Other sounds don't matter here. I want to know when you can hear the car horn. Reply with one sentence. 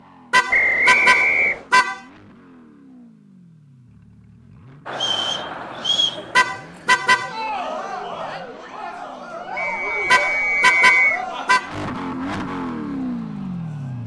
You can hear the car horn from 0.3 to 2.0 s, from 6.3 to 7.3 s and from 10.1 to 11.7 s.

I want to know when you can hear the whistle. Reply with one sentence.
The whistle can be heard from 0.5 to 1.6 s, from 5.0 to 6.2 s and from 9.6 to 11.2 s.